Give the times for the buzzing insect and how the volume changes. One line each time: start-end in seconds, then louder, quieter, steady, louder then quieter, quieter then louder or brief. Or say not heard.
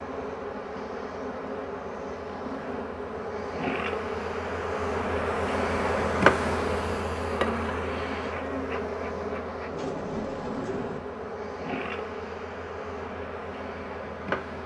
0.0-14.6 louder then quieter.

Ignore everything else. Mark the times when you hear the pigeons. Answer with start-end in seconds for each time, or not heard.
9.7-11.0.